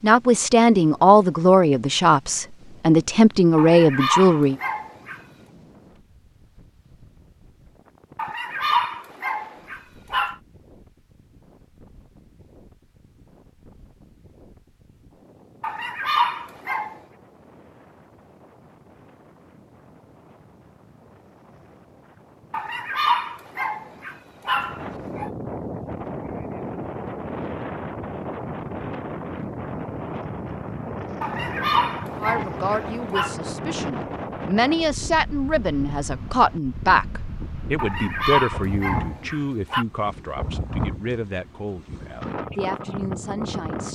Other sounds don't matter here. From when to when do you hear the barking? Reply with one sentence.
You can hear the barking from 3.5 to 5.2 s, from 8.2 to 10.3 s, from 15.6 to 16.9 s, from 22.5 to 25.3 s, from 31.2 to 33.4 s and from 37.8 to 39.9 s.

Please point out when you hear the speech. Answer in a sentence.
The speech can be heard from 0.0 to 4.5 s and from 32.2 to 43.9 s.